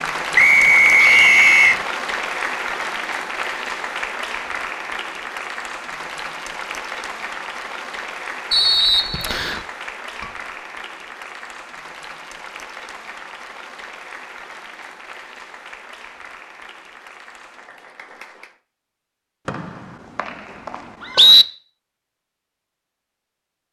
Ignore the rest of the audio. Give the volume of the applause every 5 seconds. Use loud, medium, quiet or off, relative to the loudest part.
loud, medium, medium, quiet, off.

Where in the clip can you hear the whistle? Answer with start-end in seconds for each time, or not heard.
0.3-1.8, 8.5-9.6, 19.4-21.4.